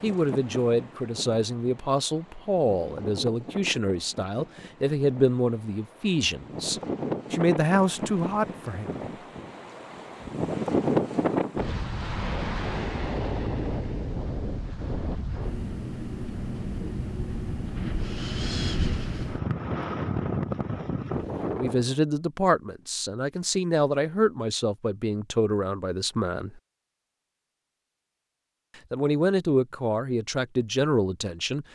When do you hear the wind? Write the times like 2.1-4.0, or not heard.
0.0-21.9.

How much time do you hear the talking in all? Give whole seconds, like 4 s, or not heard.
17 s.